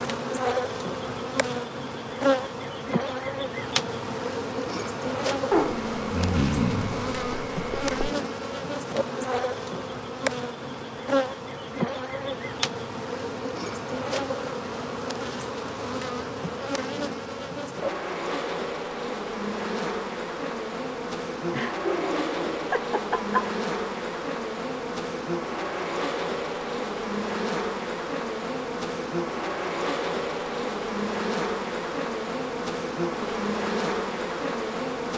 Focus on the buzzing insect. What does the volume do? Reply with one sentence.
The volume of the buzzing insect stays about the same.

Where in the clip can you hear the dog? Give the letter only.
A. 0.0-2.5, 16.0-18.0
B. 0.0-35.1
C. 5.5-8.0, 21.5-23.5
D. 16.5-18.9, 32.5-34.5
C.